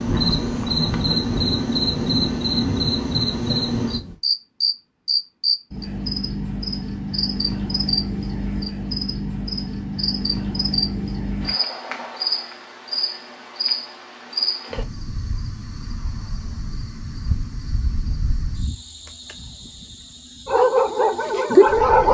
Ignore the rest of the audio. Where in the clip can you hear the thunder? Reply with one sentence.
You can hear the thunder from 0.1 to 4.2 s.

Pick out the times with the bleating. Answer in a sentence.
You can't hear the bleating here.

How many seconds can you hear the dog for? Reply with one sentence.
You can hear the dog for 2 seconds altogether.